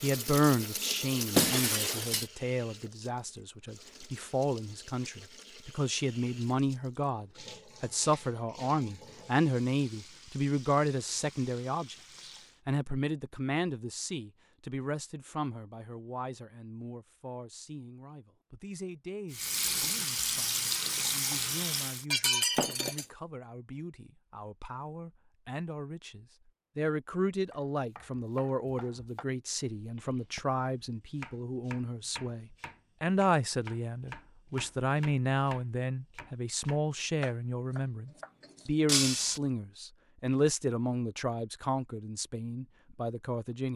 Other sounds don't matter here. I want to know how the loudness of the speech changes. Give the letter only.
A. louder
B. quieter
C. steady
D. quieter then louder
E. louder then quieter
D.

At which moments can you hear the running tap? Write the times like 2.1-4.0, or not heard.
0.0-12.6, 19.3-22.1.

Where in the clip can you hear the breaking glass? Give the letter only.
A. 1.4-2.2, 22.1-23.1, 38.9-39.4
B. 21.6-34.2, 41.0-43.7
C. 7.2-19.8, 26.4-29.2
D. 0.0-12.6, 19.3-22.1
A.